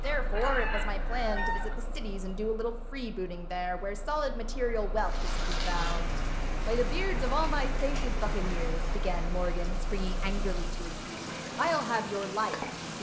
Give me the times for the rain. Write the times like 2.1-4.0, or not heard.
5.0-12.9.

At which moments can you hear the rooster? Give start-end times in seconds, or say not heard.
0.1-1.8.